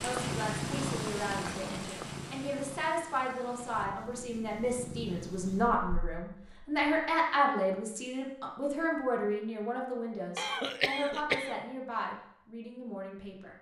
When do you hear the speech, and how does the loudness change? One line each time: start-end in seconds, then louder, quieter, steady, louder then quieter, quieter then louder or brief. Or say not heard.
0.0-13.5 louder then quieter.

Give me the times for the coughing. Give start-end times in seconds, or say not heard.
10.3-11.6.